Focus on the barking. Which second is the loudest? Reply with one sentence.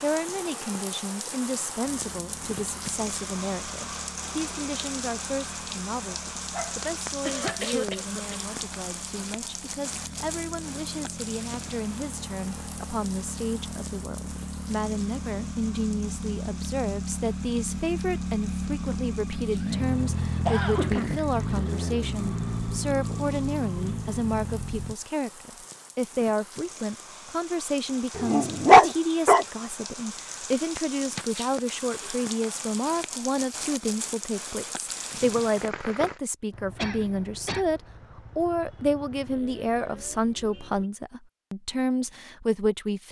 The loudest moment of the barking is at 29 seconds.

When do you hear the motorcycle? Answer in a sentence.
You can hear the motorcycle from 1.8 to 24.9 s and from 36.5 to 40.9 s.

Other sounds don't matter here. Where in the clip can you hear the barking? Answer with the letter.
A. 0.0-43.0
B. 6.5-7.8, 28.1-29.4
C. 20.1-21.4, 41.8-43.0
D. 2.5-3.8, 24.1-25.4
B.